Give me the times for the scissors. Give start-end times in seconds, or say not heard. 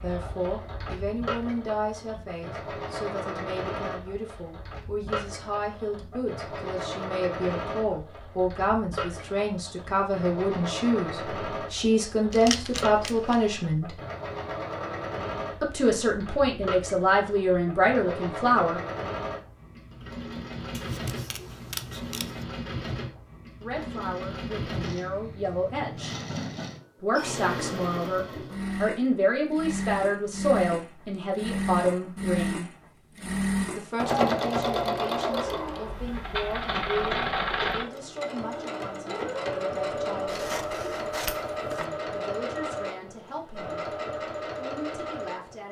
12.3-13.5, 20.7-22.4, 40.2-41.9.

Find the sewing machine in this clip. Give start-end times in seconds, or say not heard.
0.0-45.6.